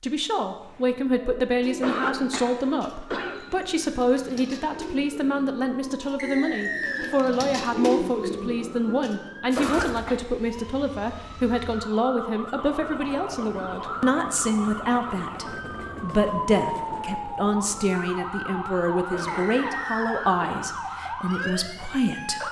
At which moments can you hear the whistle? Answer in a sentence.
You can hear the whistle from 6.2 to 7.2 s and from 19.2 to 20.3 s.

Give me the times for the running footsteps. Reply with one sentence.
The running footsteps can't be heard in this clip.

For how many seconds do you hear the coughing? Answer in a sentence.
You can hear the coughing for 4 seconds altogether.